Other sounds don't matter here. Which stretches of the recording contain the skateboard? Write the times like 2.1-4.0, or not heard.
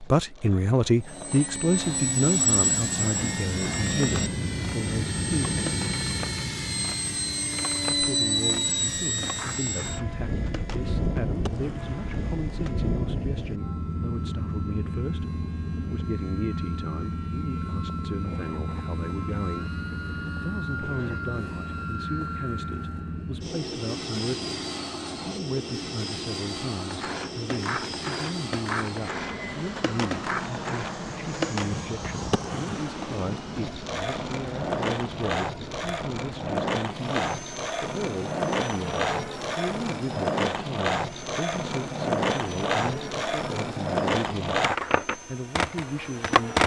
0.0-12.8, 26.8-46.6.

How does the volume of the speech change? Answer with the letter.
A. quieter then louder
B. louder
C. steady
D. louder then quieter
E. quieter
E.